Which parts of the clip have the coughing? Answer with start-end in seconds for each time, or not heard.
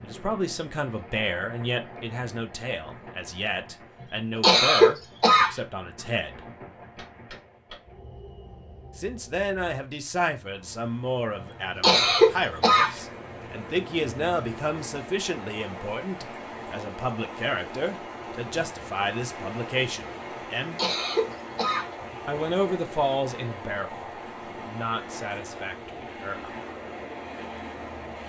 4.4-5.5, 11.8-12.9, 20.8-21.9.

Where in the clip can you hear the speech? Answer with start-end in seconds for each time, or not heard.
0.0-6.4, 8.9-20.8, 22.2-26.5.